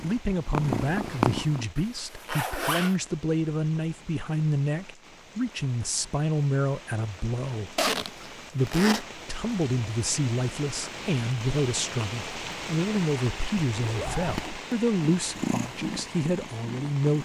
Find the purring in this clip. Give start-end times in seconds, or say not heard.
0.0-1.6, 15.1-17.2.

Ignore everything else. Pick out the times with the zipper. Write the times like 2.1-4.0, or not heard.
1.8-3.0, 7.8-9.1, 13.8-14.6.